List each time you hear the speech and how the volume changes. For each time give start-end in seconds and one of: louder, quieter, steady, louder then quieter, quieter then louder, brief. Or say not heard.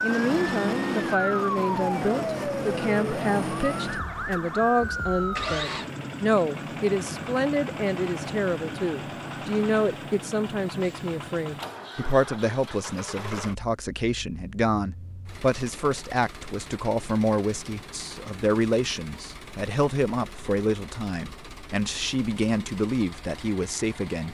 0.0-24.2 steady.